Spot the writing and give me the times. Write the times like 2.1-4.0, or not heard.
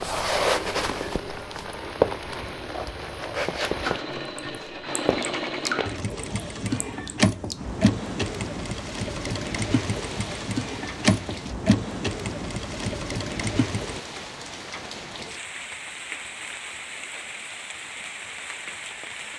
not heard.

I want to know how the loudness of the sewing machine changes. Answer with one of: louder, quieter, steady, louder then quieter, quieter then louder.
louder.